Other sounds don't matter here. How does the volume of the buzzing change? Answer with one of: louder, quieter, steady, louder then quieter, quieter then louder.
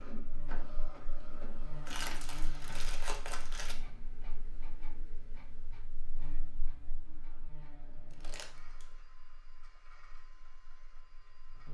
quieter.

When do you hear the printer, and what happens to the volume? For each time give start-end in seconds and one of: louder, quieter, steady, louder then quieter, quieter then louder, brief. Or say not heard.
0.0-11.6 quieter.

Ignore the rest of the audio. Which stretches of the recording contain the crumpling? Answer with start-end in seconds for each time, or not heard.
1.9-3.8, 8.1-8.8.